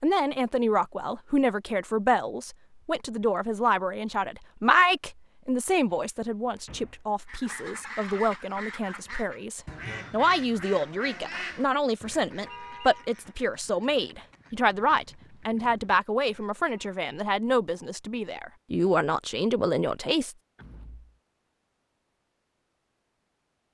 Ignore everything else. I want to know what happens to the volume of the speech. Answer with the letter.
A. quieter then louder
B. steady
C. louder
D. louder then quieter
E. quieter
B.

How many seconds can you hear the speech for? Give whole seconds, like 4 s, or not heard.
20 s.